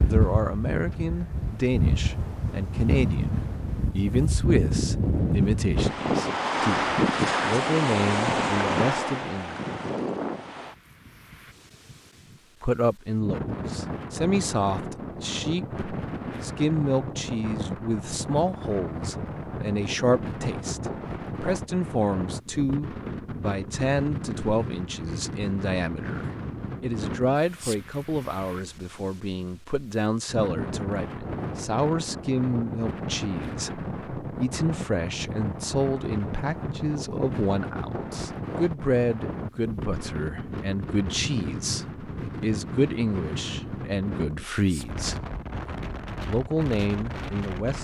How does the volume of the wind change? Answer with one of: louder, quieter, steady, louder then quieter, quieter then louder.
quieter.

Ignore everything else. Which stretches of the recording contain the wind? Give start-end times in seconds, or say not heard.
0.0-47.7.